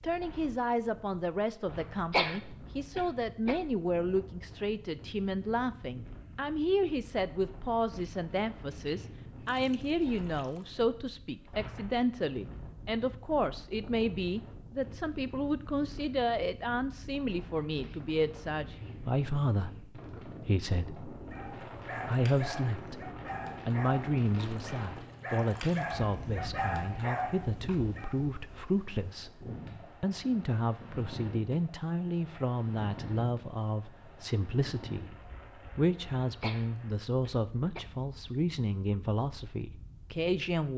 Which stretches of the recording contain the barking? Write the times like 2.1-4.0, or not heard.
21.2-28.2.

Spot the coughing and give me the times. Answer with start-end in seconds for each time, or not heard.
2.1-3.5, 36.4-37.8.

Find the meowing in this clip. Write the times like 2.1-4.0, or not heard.
not heard.